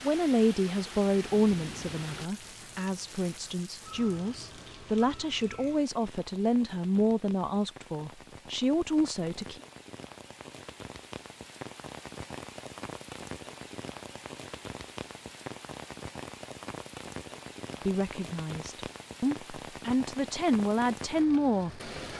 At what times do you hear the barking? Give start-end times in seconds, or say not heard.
not heard.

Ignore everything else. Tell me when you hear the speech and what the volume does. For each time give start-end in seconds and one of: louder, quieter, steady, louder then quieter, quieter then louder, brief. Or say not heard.
0.0-9.6 quieter then louder
17.8-21.9 louder.